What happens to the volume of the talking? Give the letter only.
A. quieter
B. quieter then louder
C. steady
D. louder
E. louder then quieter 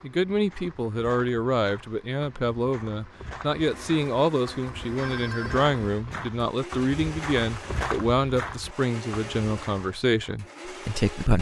C.